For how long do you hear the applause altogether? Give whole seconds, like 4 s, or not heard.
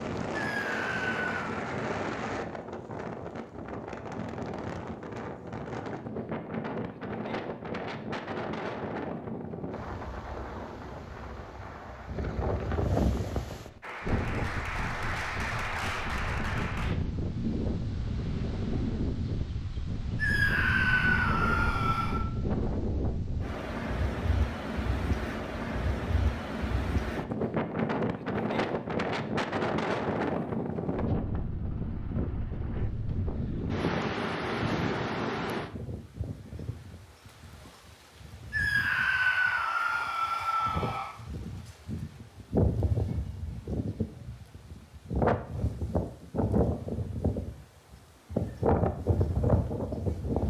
3 s.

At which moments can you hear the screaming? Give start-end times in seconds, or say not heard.
0.3-1.6, 20.1-22.2, 38.5-41.1.